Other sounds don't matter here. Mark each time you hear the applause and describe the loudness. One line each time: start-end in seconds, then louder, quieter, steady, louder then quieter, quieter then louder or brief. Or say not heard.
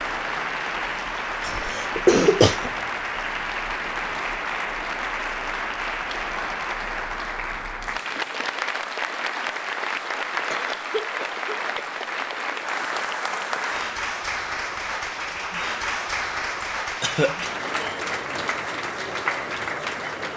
0.0-20.3 steady.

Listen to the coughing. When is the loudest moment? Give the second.
2 s.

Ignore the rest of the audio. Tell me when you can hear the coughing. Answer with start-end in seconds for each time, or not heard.
1.4-2.7, 10.5-11.9, 17.0-17.4.